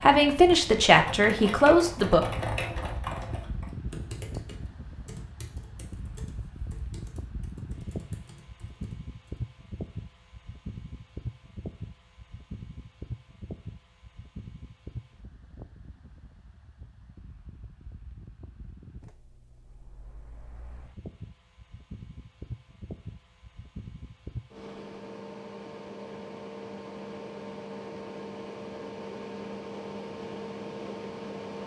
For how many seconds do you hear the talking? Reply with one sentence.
The talking can be heard for 2 seconds in total.